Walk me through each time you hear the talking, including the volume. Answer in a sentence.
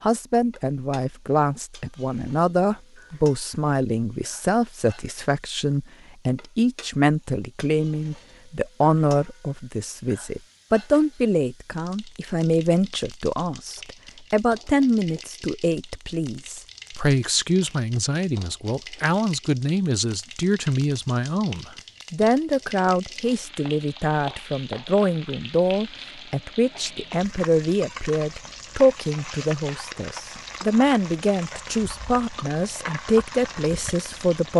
The talking can be heard from 0.0 to 34.5 s, at a steady volume.